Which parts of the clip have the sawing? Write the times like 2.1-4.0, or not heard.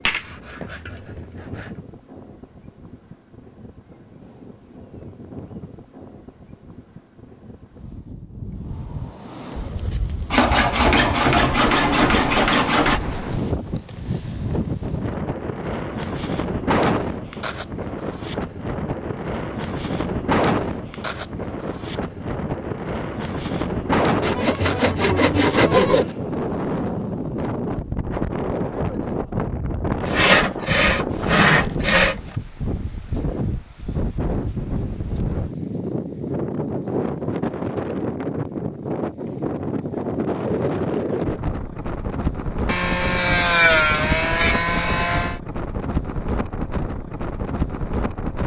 0.1-1.7, 10.3-13.0, 24.2-26.1, 30.1-32.4, 42.6-45.4.